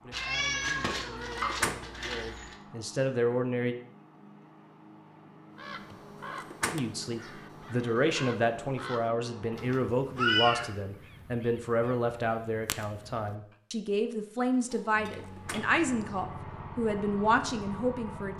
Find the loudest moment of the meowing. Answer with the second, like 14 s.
10 s.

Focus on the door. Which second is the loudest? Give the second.
2 s.